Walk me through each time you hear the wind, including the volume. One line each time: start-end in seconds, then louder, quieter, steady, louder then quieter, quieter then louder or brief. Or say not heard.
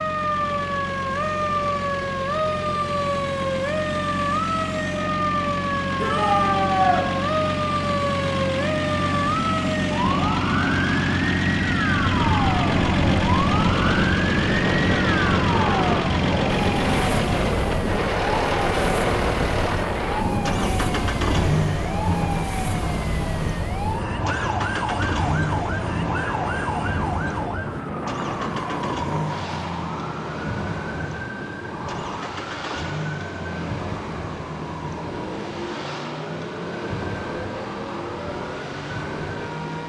12.1-39.8 quieter.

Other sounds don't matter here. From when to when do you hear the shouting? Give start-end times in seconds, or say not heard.
6.0-7.0.